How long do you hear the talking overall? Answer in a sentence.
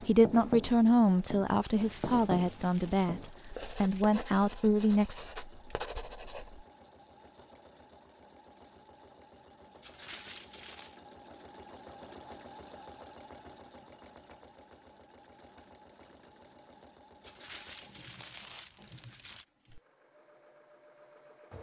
You can hear the talking for 5 seconds altogether.